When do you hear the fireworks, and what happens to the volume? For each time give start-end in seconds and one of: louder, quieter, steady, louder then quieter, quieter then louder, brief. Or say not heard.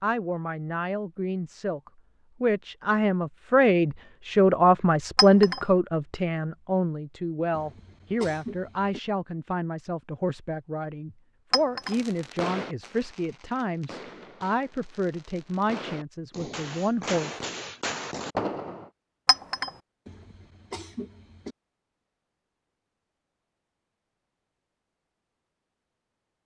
11.8-18.9 quieter then louder.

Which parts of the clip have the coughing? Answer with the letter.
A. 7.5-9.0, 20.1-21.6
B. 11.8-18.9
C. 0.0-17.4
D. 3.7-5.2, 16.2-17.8
A.